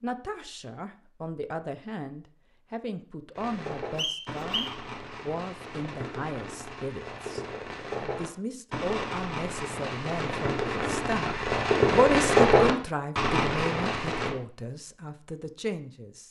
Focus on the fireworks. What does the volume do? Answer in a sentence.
The volume of the fireworks goes up.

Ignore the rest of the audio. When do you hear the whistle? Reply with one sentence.
The whistle can be heard from 4.0 to 4.8 s.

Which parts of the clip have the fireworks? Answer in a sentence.
The fireworks can be heard from 3.4 to 14.3 s.